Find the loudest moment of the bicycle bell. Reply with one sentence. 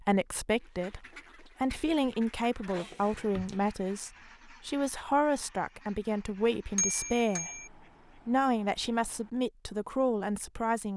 The volume of the bicycle bell peaks at 7 seconds.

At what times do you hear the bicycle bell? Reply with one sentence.
You can hear the bicycle bell from 2.7 to 3.6 s and from 6.8 to 7.7 s.